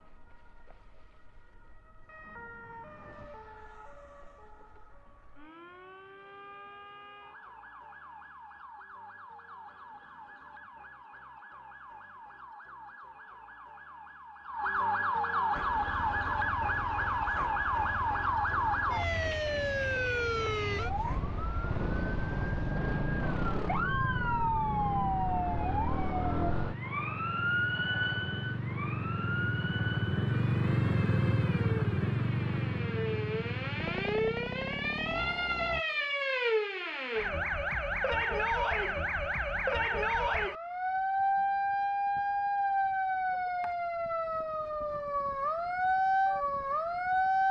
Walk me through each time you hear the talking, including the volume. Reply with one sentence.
You can't hear the talking here.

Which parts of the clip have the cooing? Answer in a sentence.
The cooing can't be heard in this clip.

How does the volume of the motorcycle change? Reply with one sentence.
The volume of the motorcycle goes up.